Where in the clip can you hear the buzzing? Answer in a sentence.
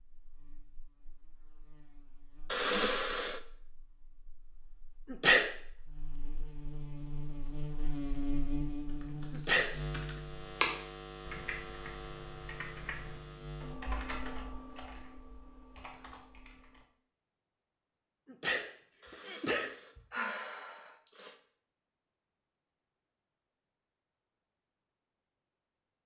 You can hear the buzzing from 0.0 to 13.8 s.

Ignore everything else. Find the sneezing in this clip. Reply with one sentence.
The sneezing can be heard from 5.1 to 5.5 s, from 9.3 to 9.8 s and from 18.3 to 20.0 s.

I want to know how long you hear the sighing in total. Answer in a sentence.
You can hear the sighing for 3 seconds altogether.